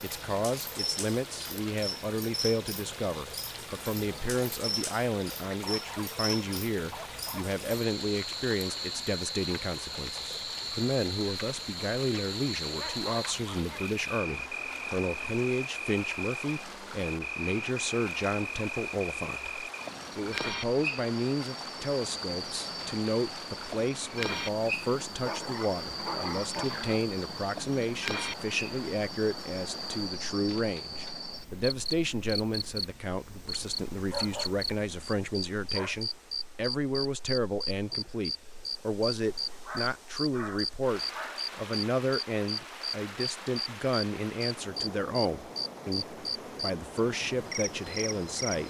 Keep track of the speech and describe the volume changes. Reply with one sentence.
The volume of the speech stays about the same.